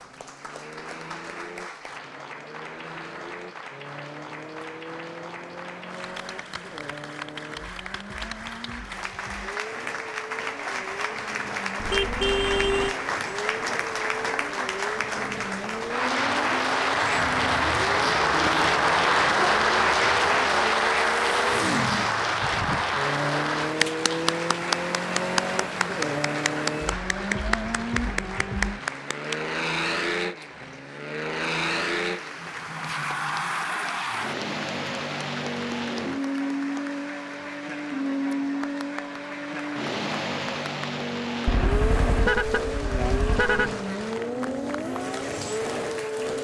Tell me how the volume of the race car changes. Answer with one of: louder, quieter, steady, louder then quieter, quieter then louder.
louder.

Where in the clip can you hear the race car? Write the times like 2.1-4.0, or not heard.
0.0-46.3.